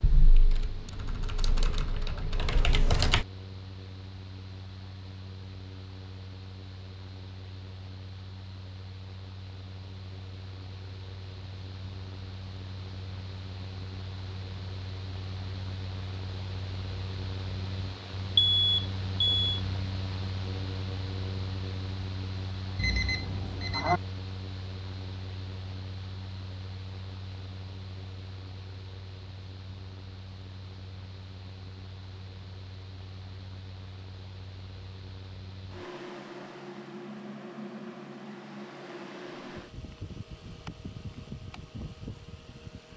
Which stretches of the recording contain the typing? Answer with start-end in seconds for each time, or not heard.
0.0-3.2.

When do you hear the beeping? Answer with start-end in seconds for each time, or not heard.
18.4-19.6, 22.8-24.0.